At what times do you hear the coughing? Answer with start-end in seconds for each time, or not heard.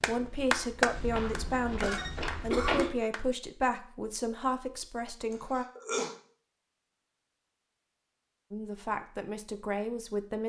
1.8-2.9, 5.3-6.2.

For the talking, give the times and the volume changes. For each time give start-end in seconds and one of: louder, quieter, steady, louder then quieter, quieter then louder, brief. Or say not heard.
0.0-5.7 steady
8.5-10.4 brief.